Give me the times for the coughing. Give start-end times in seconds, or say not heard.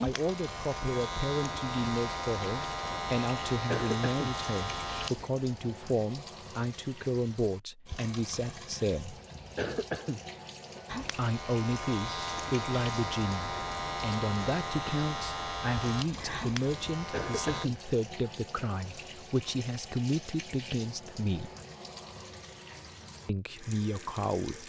3.6-4.3, 9.6-10.2, 17.1-17.7.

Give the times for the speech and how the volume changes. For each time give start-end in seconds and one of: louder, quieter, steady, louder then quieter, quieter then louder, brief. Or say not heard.
0.0-9.2 steady
11.2-21.5 steady
23.2-24.6 brief.